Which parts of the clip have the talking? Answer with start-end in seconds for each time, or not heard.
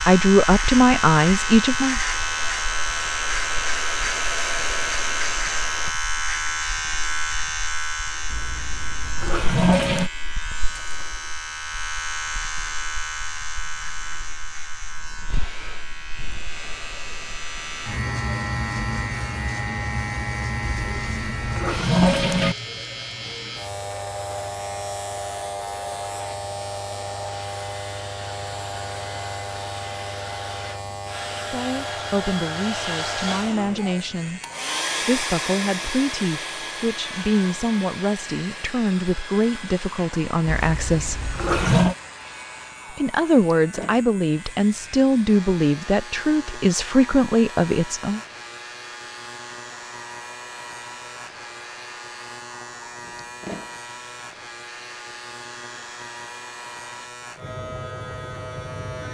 0.1-1.9, 31.4-34.4, 35.0-41.2, 42.9-48.2.